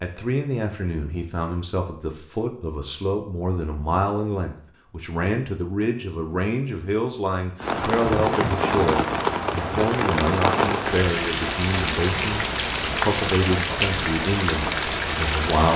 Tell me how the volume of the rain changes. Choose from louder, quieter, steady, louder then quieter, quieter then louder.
steady.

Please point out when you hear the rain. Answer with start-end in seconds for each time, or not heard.
7.6-15.7.